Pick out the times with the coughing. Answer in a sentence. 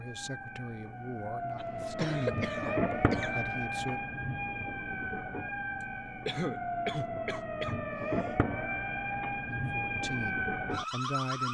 The coughing can be heard from 1.6 to 3.5 s and from 5.8 to 8.3 s.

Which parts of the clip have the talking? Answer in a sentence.
You can hear the talking from 0.0 to 4.0 s and from 9.6 to 11.4 s.